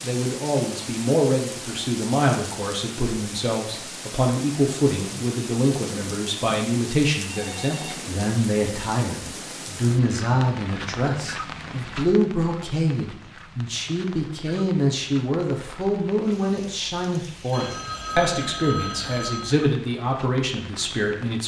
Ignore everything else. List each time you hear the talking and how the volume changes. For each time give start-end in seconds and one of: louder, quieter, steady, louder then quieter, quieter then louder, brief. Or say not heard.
0.0-21.4 steady.